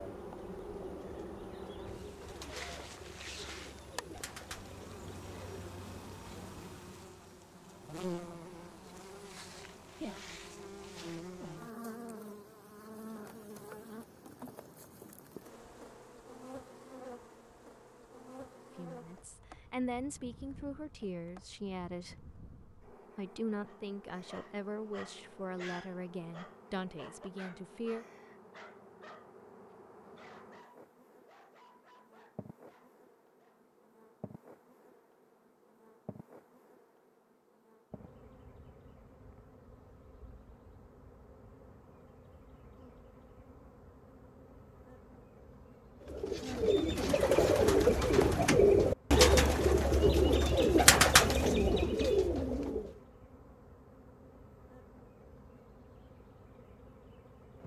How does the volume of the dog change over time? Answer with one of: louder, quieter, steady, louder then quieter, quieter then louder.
quieter.